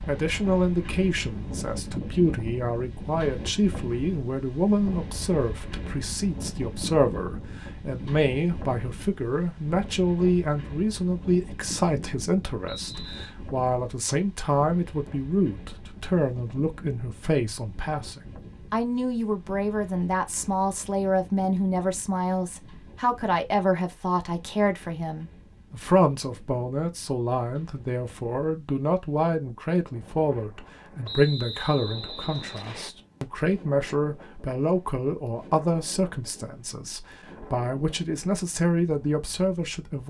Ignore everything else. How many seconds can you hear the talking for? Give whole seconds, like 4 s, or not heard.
40 s.